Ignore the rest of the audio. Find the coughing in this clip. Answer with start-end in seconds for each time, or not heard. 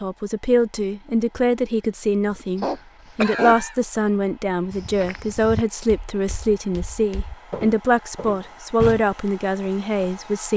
2.3-3.8.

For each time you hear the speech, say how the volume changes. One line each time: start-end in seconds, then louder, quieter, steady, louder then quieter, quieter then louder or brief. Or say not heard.
0.0-10.5 steady.